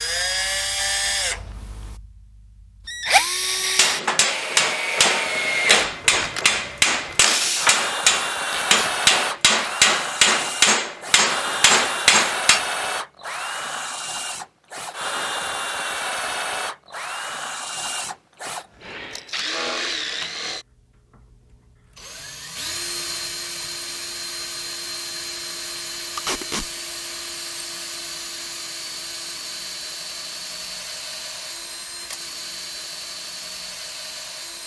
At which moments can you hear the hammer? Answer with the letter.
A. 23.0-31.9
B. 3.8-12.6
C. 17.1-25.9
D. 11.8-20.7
B.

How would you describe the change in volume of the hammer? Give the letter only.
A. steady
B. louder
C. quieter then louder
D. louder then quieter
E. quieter
A.